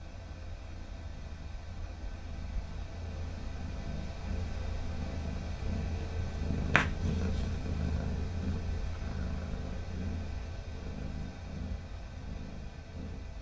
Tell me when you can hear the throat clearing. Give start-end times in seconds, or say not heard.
not heard.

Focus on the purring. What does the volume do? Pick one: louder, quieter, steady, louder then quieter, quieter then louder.
louder then quieter.